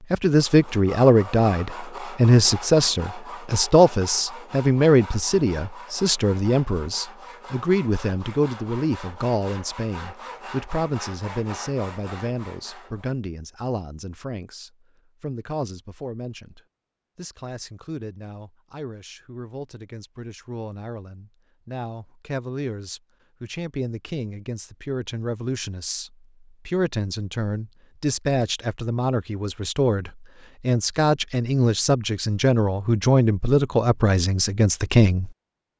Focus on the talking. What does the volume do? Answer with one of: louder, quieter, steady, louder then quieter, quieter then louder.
quieter then louder.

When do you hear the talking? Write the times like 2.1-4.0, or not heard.
0.1-35.3.